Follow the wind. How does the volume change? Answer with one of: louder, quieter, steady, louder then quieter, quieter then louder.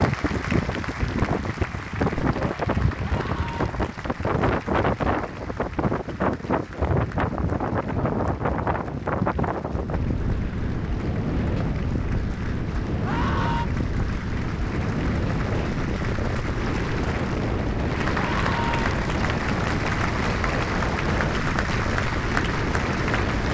steady.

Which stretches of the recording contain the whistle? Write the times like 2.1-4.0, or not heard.
not heard.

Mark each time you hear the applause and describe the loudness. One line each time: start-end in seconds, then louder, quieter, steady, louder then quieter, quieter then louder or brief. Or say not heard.
0.0-23.4 quieter then louder.